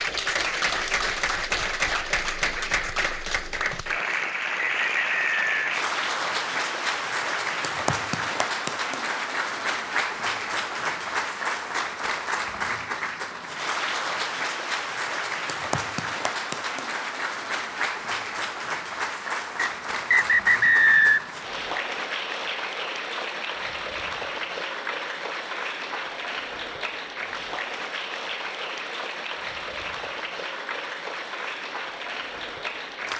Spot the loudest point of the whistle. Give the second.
21 s.